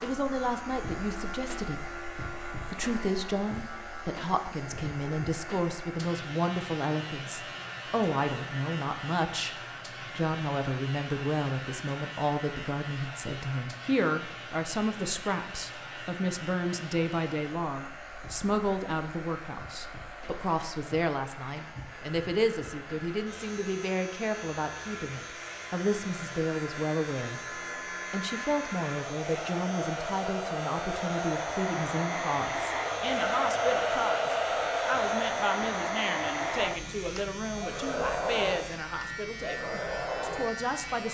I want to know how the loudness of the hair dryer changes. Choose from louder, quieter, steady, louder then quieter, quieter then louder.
louder.